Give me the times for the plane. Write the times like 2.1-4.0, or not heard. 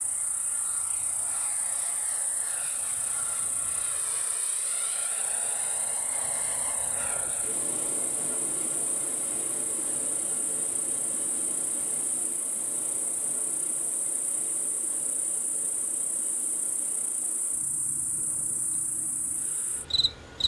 0.0-20.4.